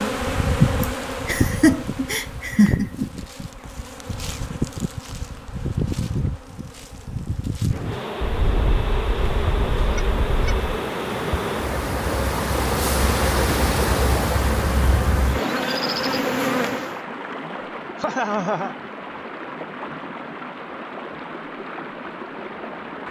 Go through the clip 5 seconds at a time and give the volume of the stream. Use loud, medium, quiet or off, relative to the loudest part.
off, medium, loud, medium, medium.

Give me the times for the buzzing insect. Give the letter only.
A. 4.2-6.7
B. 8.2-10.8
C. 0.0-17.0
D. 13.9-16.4
C.